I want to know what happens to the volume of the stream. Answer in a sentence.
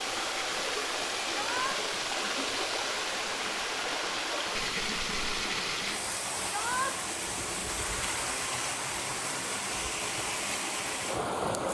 The volume of the stream stays about the same.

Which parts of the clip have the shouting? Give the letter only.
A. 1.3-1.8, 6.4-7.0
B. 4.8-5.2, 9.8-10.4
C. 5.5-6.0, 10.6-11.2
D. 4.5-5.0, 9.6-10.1
A.